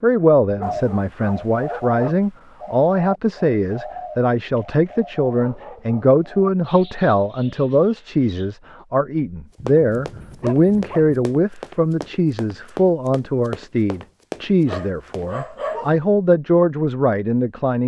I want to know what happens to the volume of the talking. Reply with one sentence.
The volume of the talking stays about the same.